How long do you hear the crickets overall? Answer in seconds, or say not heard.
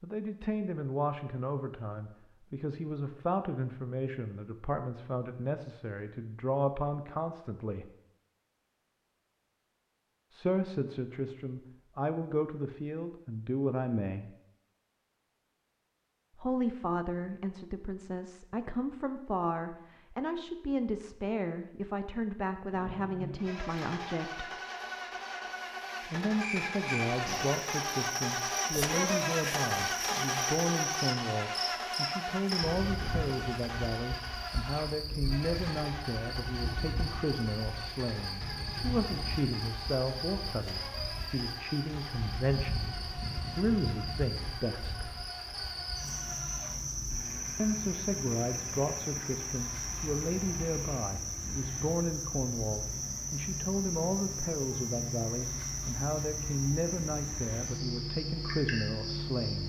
33 s.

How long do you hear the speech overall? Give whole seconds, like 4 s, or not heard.
51 s.